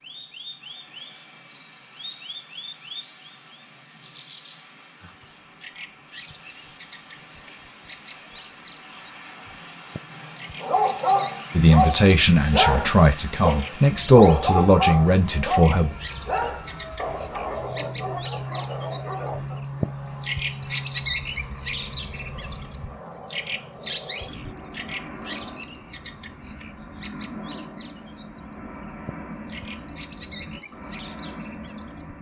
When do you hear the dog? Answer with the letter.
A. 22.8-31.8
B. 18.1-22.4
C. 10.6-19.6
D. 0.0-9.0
C.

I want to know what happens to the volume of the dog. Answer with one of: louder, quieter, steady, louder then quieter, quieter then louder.
quieter.